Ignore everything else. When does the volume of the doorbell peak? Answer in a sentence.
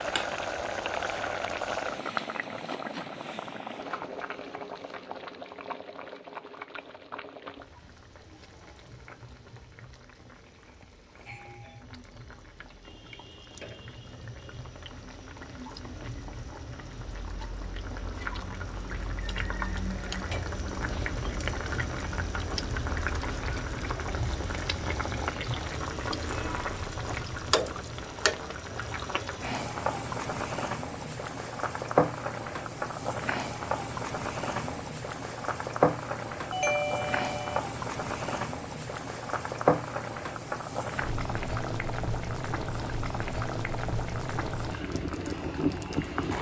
The loudest moment of the doorbell is at 37 seconds.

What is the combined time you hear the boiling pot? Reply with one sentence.
You can hear the boiling pot for 46 seconds altogether.